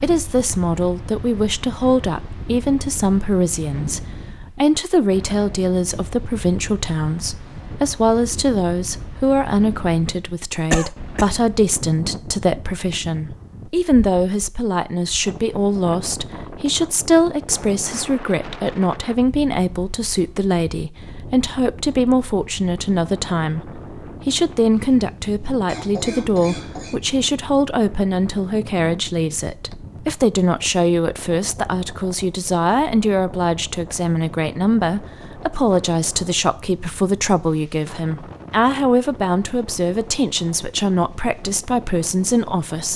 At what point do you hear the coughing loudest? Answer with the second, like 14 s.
11 s.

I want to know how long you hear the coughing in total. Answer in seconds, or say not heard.
2 s.